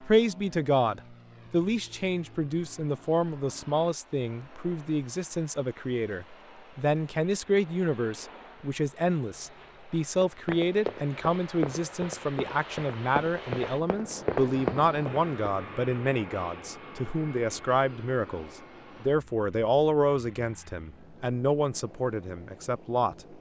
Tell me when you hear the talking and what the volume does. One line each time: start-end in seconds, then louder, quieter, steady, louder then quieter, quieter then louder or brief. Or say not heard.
0.0-23.2 steady.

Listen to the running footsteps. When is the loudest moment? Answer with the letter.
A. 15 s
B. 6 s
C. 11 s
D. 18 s
A.